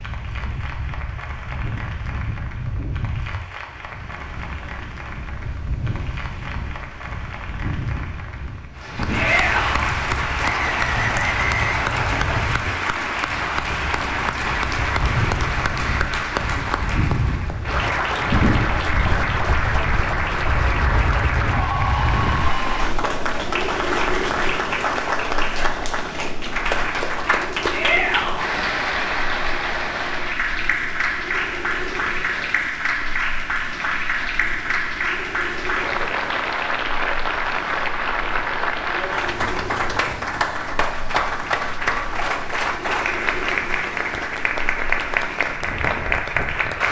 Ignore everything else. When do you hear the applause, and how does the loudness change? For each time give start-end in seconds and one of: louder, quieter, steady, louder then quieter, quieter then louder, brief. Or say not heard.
0.0-46.8 louder.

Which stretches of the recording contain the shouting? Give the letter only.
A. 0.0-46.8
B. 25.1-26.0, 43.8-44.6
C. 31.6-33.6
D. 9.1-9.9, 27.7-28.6
D.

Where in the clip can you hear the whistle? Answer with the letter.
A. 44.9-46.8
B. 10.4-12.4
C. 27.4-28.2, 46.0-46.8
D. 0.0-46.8
B.